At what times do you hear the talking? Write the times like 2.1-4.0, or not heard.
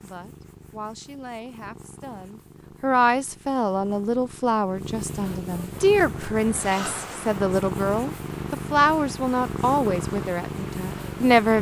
0.0-11.5.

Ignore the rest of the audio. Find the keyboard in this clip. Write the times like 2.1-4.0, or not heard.
not heard.